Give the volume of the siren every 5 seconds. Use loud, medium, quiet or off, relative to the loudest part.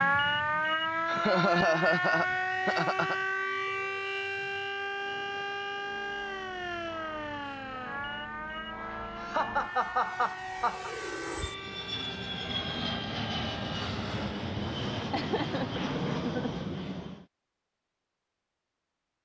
loud, medium, quiet, off.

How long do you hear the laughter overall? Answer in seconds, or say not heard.
5 s.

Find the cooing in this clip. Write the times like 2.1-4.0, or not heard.
not heard.